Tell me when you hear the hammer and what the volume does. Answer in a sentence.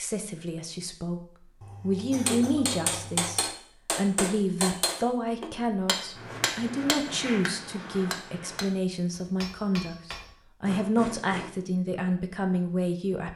The hammer can be heard from 2.2 to 11.5 s, getting quieter.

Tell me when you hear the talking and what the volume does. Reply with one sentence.
The talking can be heard from 0.0 to 13.3 s, at a steady volume.